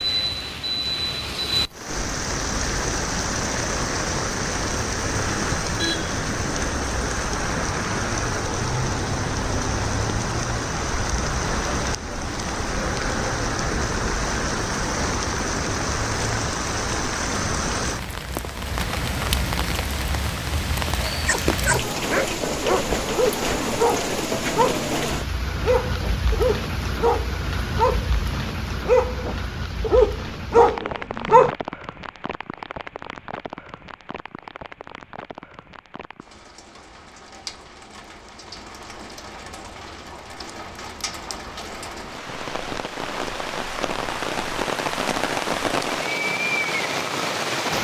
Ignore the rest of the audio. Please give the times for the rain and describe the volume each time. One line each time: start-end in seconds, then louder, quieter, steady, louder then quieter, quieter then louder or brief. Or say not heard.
0.0-47.7 quieter then louder.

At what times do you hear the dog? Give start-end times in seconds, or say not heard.
21.1-31.5.